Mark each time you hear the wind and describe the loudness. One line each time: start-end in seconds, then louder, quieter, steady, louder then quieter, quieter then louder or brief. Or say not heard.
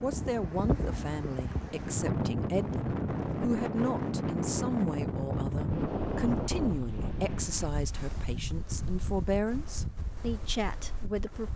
0.0-11.5 quieter.